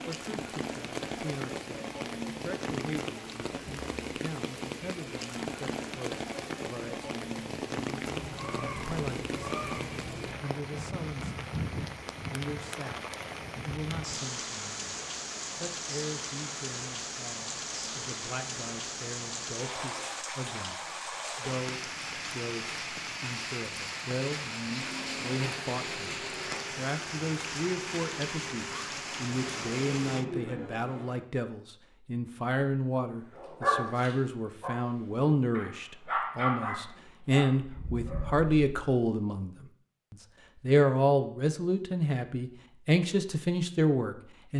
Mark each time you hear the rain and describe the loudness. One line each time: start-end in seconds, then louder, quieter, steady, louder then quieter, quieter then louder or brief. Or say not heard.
0.0-30.2 steady.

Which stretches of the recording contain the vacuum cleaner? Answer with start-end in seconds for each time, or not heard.
24.6-31.2.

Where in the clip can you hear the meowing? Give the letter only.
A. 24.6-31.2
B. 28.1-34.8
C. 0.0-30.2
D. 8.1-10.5
D.